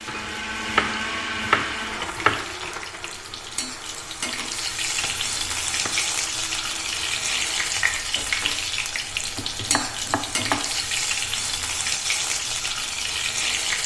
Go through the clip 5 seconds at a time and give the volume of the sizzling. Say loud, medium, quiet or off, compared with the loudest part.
medium, loud, loud.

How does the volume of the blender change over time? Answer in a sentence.
The loudness of the blender goes down.